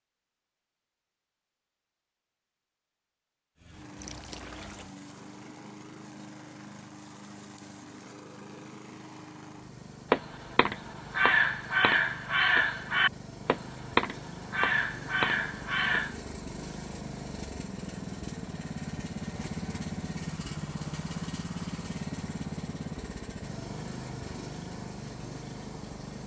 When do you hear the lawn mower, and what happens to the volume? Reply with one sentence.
The lawn mower can be heard from 3.5 to 26.2 s, getting louder.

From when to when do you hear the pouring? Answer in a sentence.
The pouring can be heard from 4.0 to 5.0 s.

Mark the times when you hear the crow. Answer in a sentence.
The crow can be heard from 10.1 to 16.2 s.